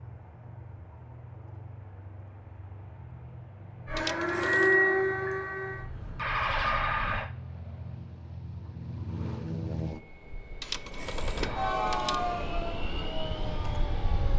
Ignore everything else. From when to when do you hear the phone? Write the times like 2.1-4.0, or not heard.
4.0-4.8, 10.6-12.2.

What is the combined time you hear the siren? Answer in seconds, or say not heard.
6 s.